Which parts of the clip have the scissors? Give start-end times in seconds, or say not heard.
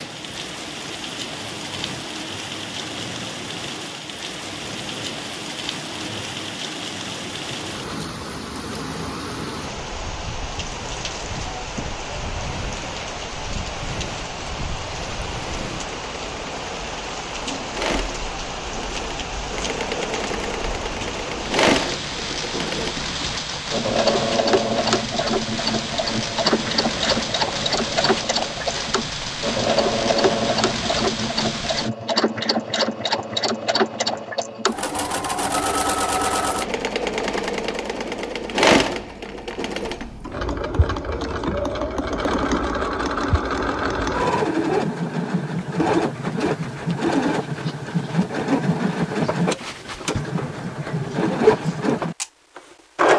not heard.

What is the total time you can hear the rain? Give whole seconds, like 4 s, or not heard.
32 s.